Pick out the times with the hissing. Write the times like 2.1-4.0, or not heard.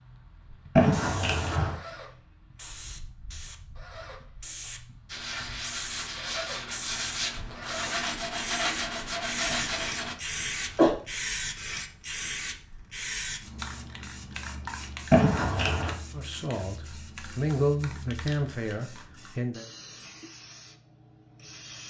0.0-21.8.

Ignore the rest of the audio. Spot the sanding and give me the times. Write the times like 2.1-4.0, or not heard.
5.0-10.2.